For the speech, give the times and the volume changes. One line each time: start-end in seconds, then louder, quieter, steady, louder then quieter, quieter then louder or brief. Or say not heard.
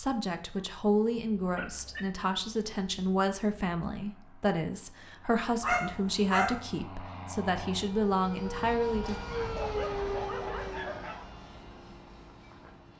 0.0-9.2 steady.